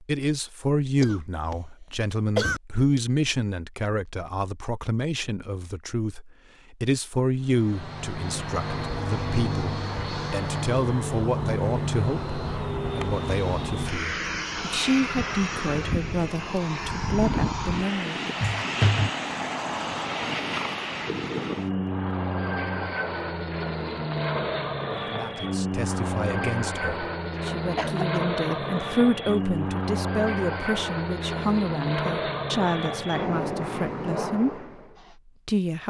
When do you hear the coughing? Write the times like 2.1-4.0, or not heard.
1.0-1.6, 2.4-3.0, 18.4-19.1, 27.8-28.8.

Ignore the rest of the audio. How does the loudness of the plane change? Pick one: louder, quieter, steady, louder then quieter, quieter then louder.
steady.